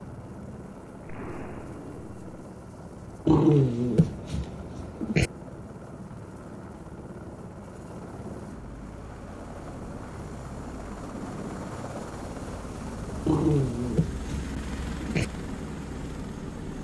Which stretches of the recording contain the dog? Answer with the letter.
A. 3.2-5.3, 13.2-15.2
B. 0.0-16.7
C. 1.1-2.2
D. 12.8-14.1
A.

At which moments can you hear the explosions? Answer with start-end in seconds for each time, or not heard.
1.1-2.2.